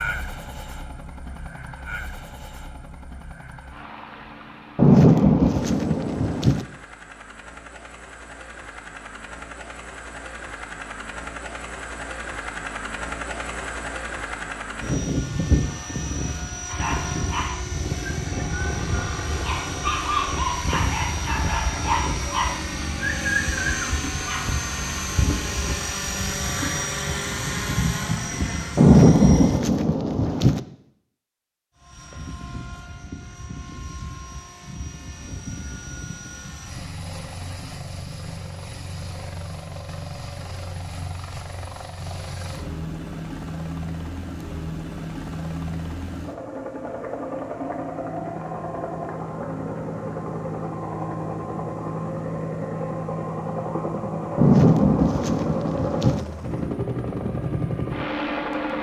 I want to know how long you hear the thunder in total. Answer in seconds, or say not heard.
6 s.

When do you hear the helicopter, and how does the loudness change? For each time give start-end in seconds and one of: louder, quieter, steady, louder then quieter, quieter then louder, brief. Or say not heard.
0.0-29.6 louder
31.8-58.7 louder.